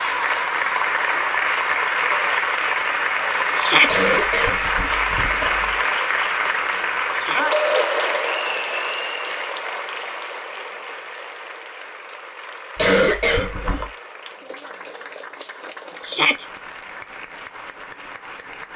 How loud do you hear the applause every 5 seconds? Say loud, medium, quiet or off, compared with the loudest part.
loud, loud, quiet, quiet.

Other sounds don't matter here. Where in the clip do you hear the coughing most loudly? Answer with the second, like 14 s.
13 s.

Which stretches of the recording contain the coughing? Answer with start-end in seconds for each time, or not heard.
3.9-5.8, 12.8-13.9.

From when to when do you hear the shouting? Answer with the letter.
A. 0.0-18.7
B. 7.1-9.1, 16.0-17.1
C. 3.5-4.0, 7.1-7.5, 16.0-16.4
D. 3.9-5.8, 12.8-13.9
C.